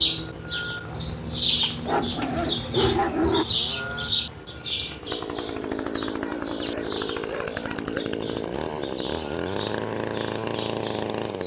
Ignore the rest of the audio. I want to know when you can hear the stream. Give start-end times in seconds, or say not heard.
not heard.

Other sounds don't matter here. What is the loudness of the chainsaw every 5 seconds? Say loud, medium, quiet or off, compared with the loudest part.
quiet, loud, loud.